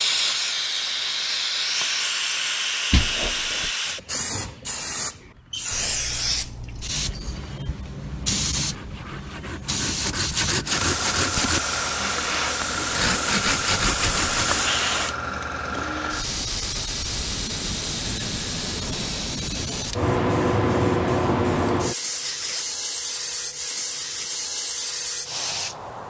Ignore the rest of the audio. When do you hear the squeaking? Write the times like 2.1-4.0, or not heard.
2.9-3.7, 22.1-22.6.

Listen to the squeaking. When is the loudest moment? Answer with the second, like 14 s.
3 s.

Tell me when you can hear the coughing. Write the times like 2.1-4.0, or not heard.
not heard.